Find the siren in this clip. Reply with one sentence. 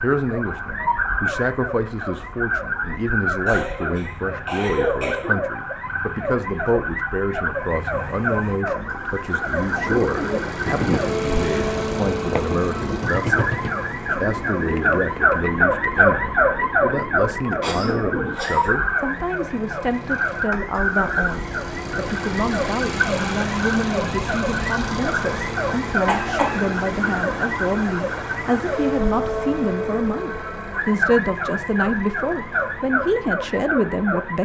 The siren can be heard from 0.0 to 34.4 s.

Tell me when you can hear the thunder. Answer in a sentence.
You can't hear the thunder here.